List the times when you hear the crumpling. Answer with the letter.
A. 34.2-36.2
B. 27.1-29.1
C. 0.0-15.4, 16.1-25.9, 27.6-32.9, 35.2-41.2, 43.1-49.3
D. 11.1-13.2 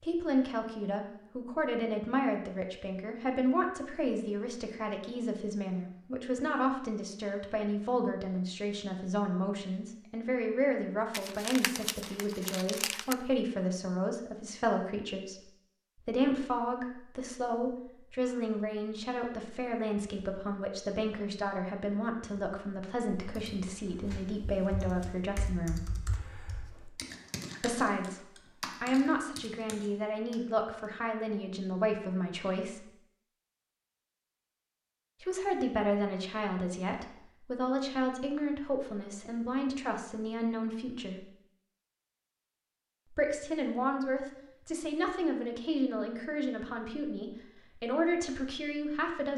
D.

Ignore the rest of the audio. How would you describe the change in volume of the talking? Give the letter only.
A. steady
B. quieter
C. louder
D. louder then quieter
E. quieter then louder
A.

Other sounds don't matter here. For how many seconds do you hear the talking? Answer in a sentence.
You can hear the talking for 43 seconds altogether.